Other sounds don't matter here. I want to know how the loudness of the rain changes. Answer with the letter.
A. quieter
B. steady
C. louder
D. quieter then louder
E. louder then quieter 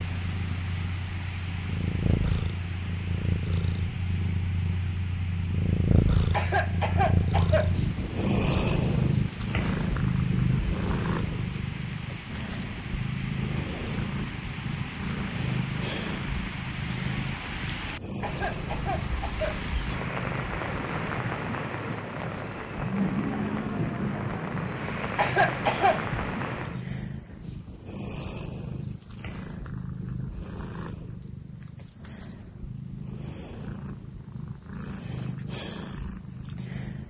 C.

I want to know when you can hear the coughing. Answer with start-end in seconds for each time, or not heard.
6.3-7.8, 18.2-19.6, 25.1-26.0.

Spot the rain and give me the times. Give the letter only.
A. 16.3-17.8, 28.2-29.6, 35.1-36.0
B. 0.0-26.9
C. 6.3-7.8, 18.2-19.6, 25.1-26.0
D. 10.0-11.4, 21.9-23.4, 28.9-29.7
B.